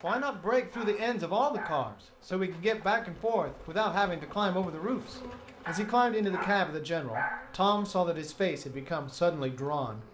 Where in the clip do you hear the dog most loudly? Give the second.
7 s.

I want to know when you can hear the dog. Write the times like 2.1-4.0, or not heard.
0.1-1.9, 5.7-7.5.